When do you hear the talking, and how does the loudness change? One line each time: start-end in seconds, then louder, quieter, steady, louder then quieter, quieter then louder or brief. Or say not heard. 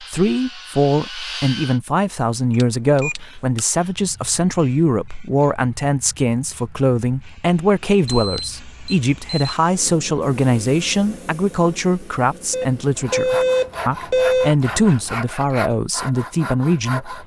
0.1-17.2 steady.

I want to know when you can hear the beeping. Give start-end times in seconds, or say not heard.
2.5-3.6, 8.1-9.5, 12.5-14.5.